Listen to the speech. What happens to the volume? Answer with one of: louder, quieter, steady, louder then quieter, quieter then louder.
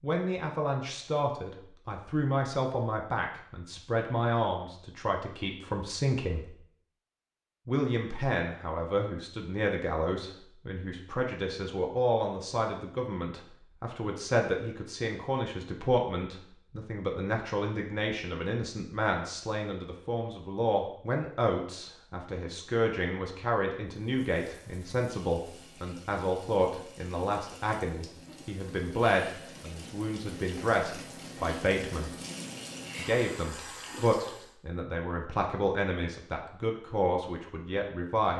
steady.